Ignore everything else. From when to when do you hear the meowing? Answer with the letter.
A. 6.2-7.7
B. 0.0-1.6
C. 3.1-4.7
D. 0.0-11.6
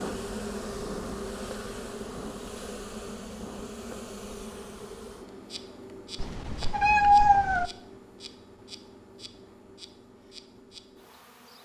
A.